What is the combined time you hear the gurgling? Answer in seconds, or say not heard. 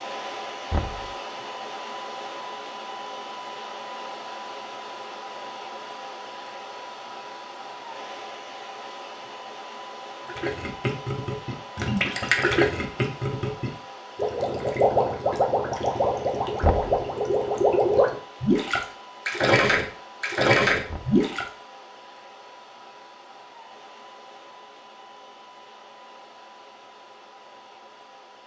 11 s.